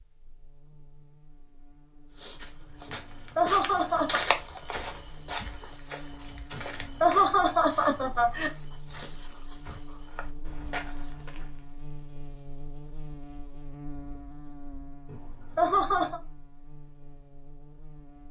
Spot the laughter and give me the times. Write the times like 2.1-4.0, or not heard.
2.9-4.2, 6.5-8.5, 15.1-16.2.